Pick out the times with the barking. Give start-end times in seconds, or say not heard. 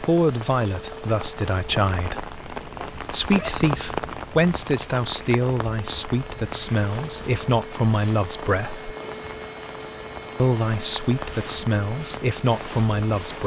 2.8-3.5.